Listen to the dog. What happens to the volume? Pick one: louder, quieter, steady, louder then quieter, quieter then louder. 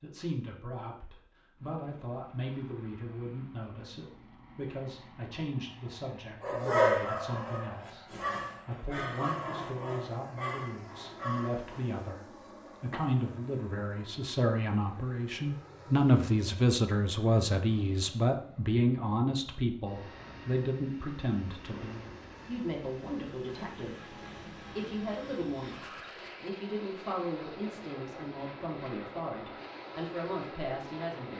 quieter.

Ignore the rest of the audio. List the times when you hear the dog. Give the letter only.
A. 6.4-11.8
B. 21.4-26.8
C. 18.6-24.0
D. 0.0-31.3
A.